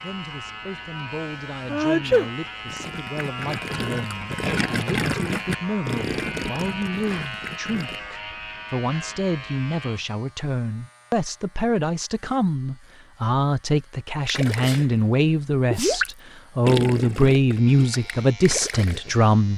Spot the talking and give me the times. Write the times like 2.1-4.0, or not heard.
0.0-19.5.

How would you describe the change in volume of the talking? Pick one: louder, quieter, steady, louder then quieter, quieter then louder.
louder.